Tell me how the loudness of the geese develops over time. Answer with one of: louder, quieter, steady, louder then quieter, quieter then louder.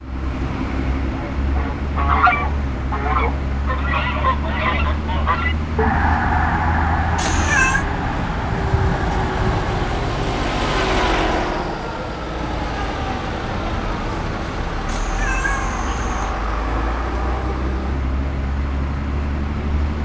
quieter.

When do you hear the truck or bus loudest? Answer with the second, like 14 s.
11 s.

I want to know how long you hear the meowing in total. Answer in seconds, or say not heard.
2 s.